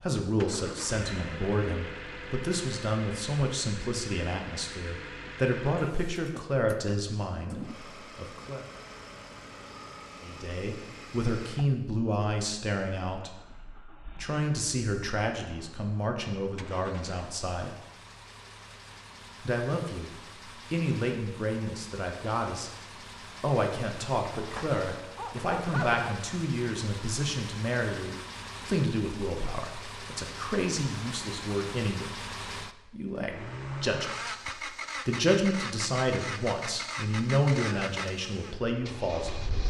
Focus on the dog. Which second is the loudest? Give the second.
26 s.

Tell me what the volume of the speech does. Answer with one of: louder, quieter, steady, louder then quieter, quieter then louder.
steady.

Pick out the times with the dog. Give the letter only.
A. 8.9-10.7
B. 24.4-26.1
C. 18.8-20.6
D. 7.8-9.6
B.